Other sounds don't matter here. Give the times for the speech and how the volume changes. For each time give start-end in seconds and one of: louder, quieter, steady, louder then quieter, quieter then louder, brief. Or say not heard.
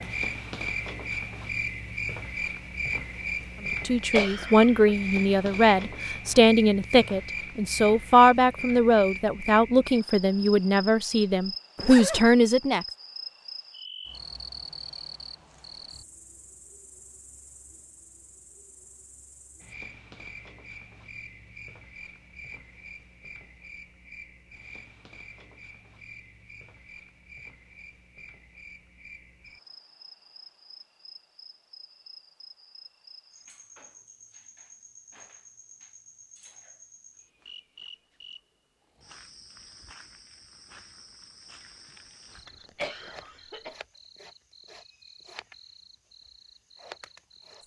3.9-12.8 steady.